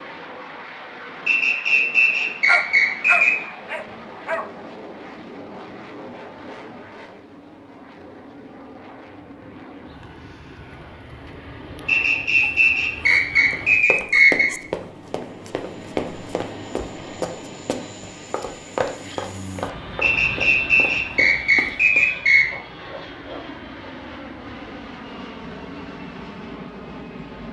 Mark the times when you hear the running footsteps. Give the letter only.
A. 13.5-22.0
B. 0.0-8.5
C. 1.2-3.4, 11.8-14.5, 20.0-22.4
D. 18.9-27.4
A.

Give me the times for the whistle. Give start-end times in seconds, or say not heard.
1.2-3.4, 11.8-14.5, 20.0-22.4.